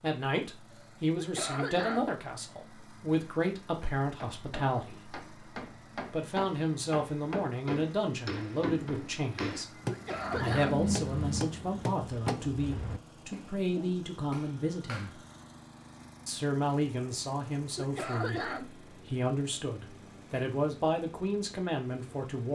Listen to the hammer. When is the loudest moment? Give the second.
11 s.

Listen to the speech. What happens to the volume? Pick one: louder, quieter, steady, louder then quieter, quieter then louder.
steady.